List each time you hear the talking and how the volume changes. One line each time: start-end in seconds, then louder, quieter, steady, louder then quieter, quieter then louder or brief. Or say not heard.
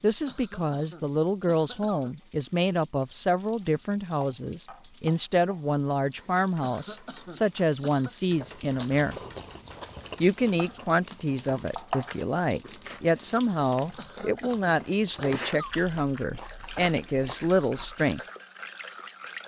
0.0-9.2 steady
10.2-18.2 steady.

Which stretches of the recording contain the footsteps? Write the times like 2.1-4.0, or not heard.
not heard.